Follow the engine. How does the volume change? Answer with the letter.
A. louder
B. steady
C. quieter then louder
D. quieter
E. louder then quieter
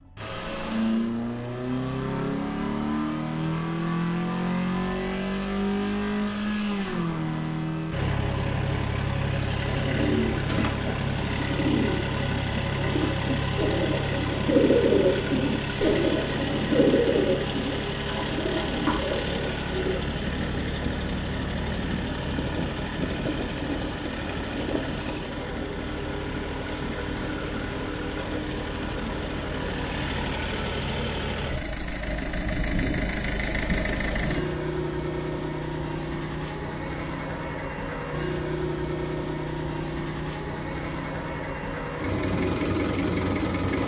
B.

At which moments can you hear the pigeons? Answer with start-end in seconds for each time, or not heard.
9.7-20.0.